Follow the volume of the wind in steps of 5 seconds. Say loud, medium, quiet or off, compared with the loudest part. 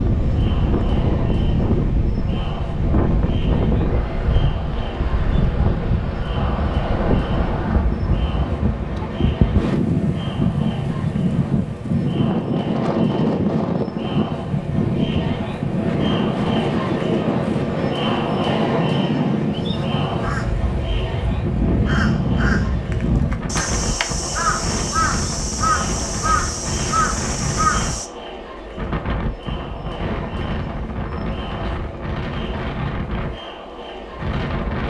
loud, loud, loud, loud, loud, medium, medium.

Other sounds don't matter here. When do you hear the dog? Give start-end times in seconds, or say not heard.
not heard.